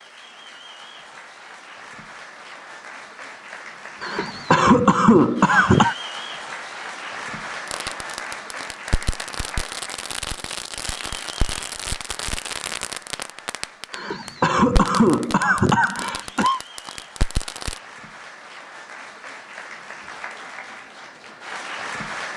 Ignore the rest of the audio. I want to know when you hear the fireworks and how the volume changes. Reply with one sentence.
You can hear the fireworks from 7.7 to 17.8 s, at a steady volume.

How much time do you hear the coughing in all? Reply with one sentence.
The coughing can be heard for 5 seconds in total.